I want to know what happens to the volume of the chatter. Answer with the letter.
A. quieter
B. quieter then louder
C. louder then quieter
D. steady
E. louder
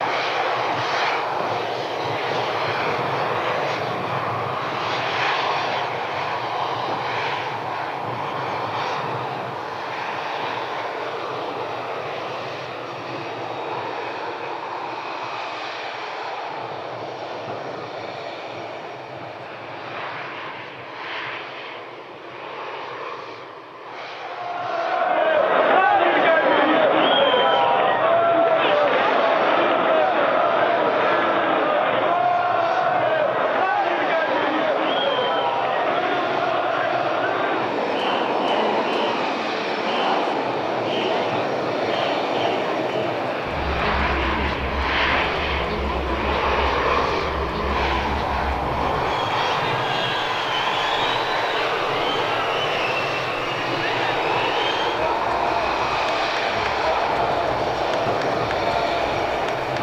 A.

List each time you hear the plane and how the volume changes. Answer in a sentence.
You can hear the plane from 0.0 to 59.7 s, getting quieter then louder.